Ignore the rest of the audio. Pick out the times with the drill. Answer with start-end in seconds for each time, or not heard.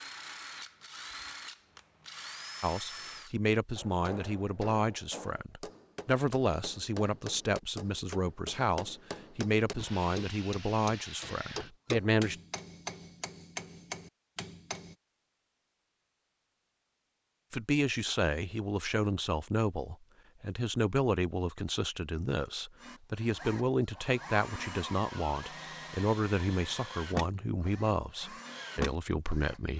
0.0-3.4, 9.6-11.9, 22.8-29.7.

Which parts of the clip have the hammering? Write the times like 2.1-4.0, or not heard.
3.8-14.9.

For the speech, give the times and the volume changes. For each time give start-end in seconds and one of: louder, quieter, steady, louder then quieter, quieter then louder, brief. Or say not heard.
2.6-12.3 steady
17.5-29.7 steady.